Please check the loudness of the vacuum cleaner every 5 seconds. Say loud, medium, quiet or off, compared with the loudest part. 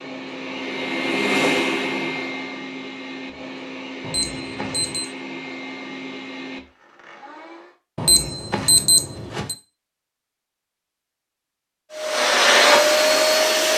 medium, quiet, loud.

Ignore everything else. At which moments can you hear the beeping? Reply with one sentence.
You can hear the beeping from 4.0 to 5.0 s and from 8.0 to 9.6 s.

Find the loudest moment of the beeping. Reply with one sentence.
The loudest moment of the beeping is at 9 seconds.